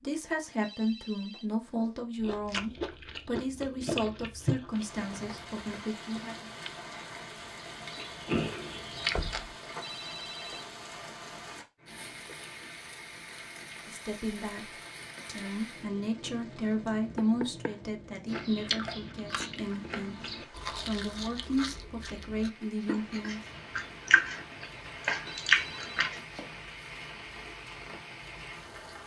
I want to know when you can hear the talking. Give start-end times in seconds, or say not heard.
0.0-6.5, 13.8-23.4.